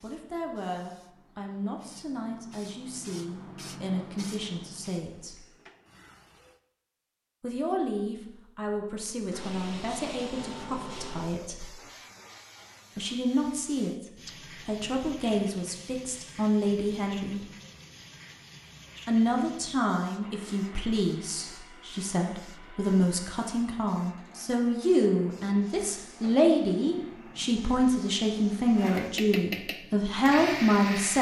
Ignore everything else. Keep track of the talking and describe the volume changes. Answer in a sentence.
The loudness of the talking goes up.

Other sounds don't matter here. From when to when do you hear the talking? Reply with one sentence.
You can hear the talking from 0.0 to 5.5 s, from 7.4 to 11.7 s, from 12.9 to 17.4 s and from 19.1 to 31.1 s.